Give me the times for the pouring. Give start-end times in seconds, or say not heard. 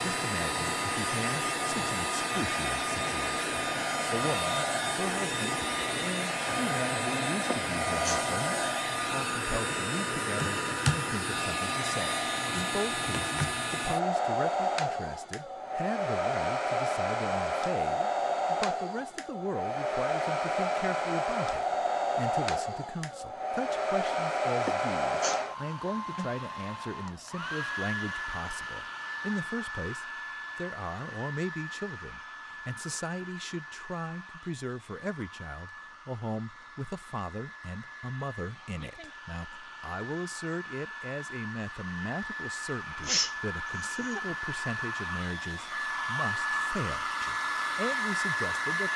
not heard.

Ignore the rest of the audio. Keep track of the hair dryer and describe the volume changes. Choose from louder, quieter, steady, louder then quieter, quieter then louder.
quieter then louder.